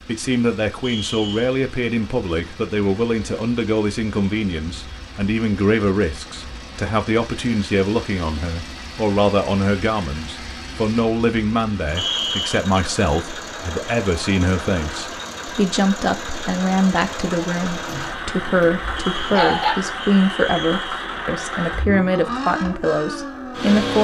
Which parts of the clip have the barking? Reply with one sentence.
The barking can be heard from 17.9 to 19.8 s.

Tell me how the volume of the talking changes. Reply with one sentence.
The loudness of the talking stays about the same.